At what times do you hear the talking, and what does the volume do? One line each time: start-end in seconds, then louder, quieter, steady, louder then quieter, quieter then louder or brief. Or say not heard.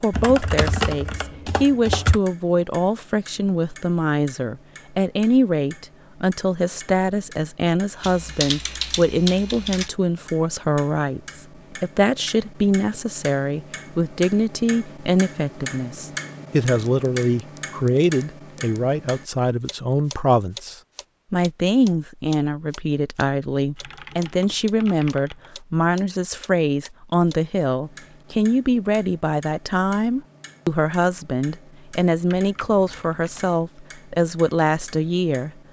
0.0-35.5 steady.